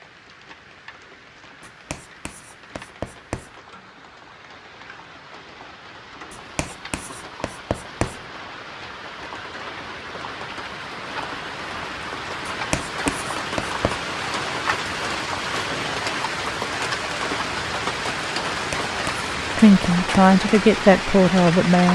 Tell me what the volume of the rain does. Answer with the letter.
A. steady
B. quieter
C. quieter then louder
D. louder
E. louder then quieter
D.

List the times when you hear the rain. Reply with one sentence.
The rain can be heard from 0.0 to 21.9 s.